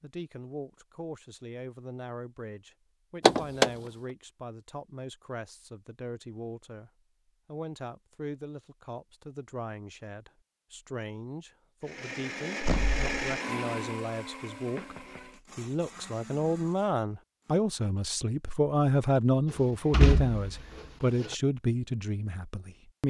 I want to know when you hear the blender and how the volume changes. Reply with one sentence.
The blender can be heard from 11.8 to 17.6 s, getting quieter.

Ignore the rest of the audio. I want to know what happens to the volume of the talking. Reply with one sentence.
The loudness of the talking goes up.